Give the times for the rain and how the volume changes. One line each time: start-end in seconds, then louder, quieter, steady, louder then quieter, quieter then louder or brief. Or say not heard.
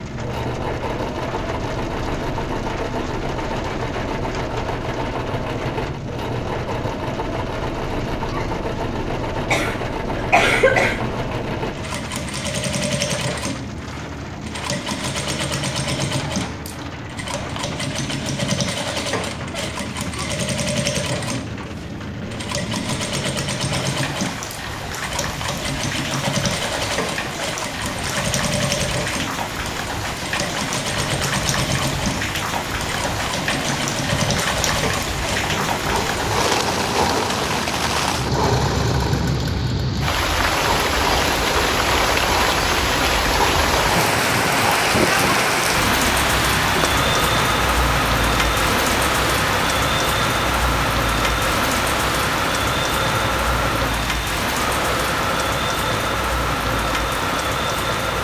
0.0-58.1 louder.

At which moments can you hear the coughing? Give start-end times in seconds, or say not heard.
9.5-11.2.